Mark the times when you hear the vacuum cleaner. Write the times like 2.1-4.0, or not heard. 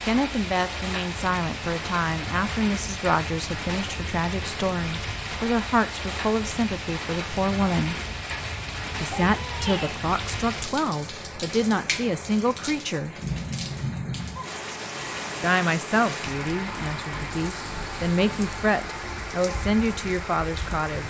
not heard.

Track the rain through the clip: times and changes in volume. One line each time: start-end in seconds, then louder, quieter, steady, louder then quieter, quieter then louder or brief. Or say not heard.
0.0-21.0 steady.